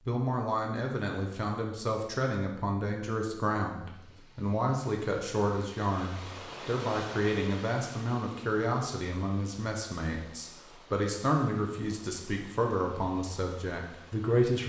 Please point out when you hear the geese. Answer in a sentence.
You can't hear the geese here.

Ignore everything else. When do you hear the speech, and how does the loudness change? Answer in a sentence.
You can hear the speech from 0.1 to 14.6 s, at a steady volume.